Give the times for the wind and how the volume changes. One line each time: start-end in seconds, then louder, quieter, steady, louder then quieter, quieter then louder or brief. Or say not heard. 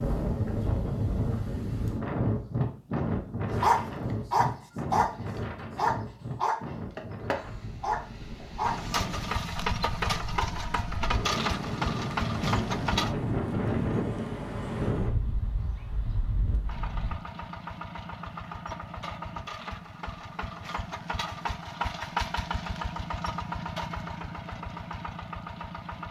0.0-17.1 quieter then louder.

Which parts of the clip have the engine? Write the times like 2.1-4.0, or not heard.
8.7-13.2, 16.6-26.0.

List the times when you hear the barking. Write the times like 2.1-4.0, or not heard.
3.6-5.1, 5.8-9.8.